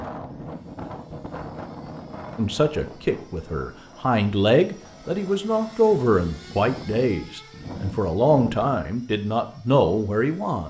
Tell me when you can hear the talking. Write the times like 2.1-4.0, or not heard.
2.4-10.6.